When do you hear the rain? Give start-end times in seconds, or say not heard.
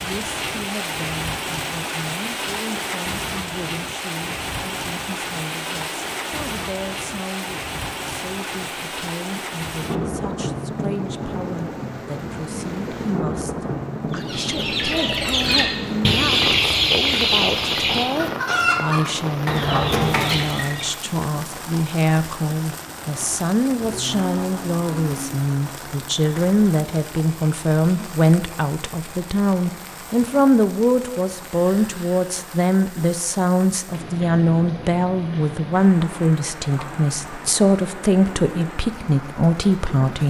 0.0-40.2.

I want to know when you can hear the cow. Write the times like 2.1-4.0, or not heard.
23.8-25.4.